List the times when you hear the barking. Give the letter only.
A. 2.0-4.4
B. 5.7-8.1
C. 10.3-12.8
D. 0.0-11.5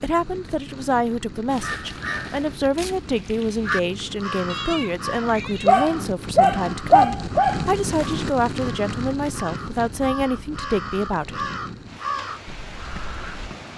B.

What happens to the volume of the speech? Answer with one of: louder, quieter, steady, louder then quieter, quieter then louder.
steady.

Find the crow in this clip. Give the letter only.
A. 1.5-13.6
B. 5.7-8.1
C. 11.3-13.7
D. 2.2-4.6
A.